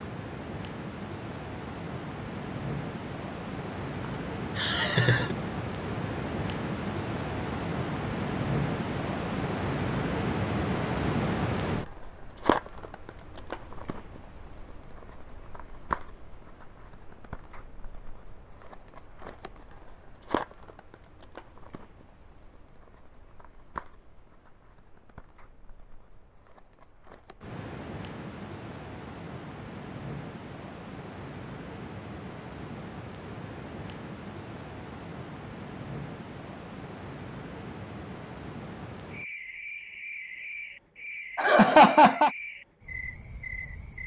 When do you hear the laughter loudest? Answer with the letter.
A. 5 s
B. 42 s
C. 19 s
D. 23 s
B.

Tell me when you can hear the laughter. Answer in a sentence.
The laughter can be heard from 4.1 to 5.3 s and from 41.4 to 42.3 s.